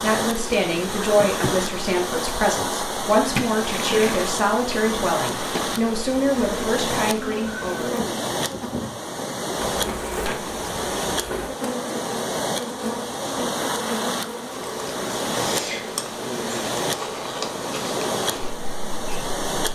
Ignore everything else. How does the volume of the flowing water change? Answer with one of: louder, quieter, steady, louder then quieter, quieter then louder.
steady.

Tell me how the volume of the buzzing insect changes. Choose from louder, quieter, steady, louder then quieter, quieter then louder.
steady.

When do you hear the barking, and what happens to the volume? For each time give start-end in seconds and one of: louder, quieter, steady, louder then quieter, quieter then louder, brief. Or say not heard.
not heard.